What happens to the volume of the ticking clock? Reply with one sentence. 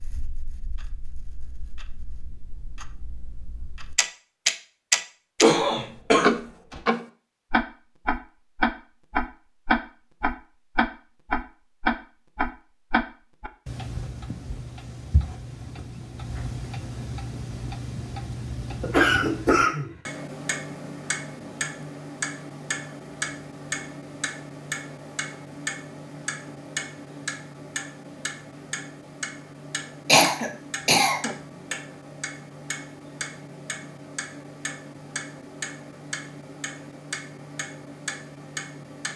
The loudness of the ticking clock goes down.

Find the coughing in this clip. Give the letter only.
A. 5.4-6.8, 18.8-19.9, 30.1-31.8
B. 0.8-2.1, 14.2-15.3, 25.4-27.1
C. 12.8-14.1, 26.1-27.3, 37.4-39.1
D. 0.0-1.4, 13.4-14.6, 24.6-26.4
A.